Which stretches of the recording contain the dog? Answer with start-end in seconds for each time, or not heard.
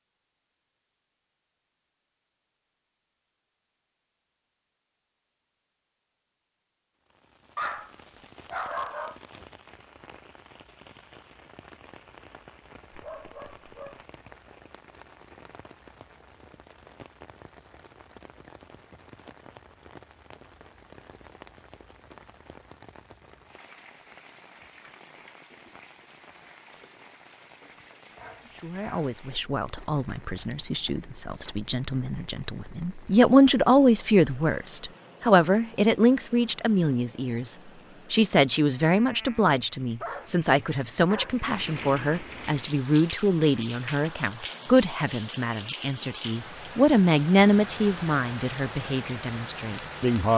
7.5-9.2, 12.9-14.0, 28.1-29.1, 39.5-41.4.